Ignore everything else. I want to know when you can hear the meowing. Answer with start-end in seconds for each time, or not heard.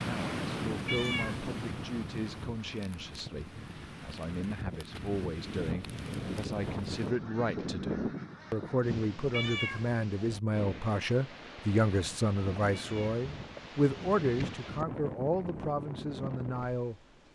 0.8-1.4, 9.3-9.8, 12.7-13.2.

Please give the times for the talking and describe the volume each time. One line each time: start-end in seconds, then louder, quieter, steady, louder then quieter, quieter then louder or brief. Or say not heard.
0.0-17.3 louder.